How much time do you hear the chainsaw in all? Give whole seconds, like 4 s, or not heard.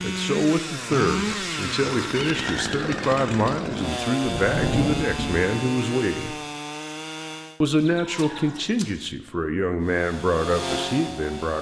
9 s.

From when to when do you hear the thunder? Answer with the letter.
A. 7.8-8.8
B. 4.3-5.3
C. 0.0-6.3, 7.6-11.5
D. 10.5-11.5
B.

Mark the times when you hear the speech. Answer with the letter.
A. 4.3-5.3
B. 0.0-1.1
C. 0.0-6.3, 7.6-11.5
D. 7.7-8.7
C.